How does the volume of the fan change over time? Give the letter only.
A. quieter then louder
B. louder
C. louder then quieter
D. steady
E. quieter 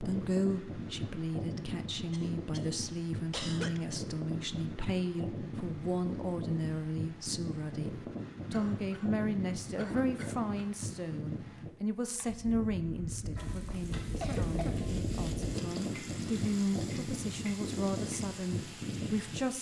D.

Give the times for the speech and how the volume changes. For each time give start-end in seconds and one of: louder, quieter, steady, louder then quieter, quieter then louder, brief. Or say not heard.
0.0-19.5 steady.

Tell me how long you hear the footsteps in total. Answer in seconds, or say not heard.
not heard.